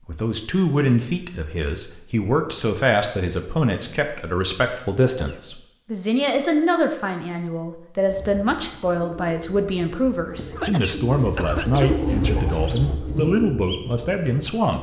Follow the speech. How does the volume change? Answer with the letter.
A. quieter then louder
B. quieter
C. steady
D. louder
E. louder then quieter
C.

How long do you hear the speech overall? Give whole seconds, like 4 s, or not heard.
15 s.